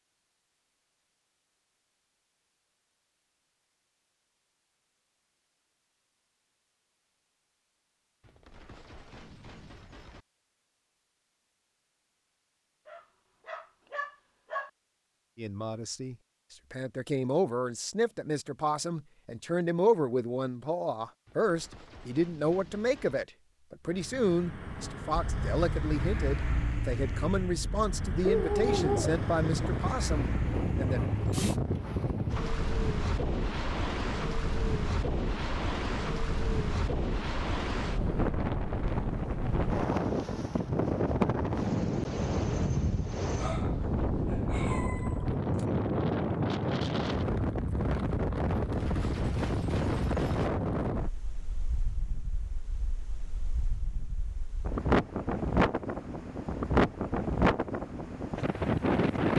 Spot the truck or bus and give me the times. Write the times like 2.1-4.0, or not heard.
23.9-31.6.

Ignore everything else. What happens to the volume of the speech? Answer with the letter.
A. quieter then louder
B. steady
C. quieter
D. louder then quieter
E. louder
B.